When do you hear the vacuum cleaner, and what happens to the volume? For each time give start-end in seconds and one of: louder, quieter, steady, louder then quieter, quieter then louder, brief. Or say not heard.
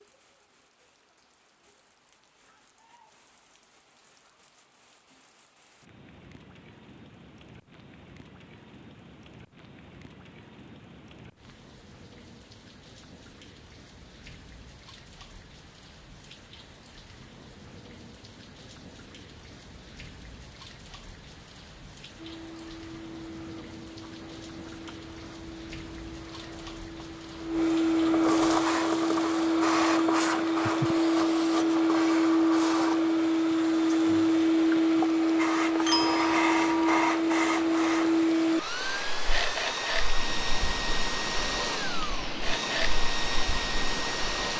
22.1-44.5 louder then quieter.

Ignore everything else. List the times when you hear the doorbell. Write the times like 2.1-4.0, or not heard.
35.6-37.1.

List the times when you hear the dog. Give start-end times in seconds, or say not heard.
not heard.